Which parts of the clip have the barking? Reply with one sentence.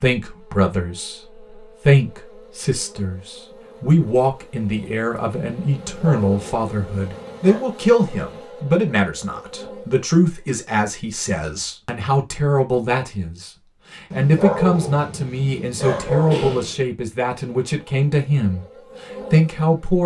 The barking can be heard from 5.7 to 7.7 s and from 14.1 to 16.8 s.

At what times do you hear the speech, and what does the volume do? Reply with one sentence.
You can hear the speech from 0.0 to 18.6 s, at a steady volume; and briefly from 19.3 to 20.0 s.